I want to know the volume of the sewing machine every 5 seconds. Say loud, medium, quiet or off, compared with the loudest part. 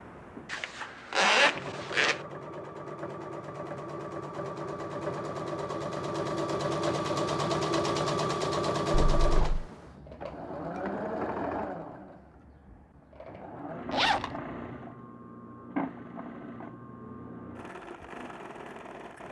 medium, loud, medium, medium.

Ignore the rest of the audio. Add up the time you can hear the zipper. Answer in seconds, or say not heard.
3 s.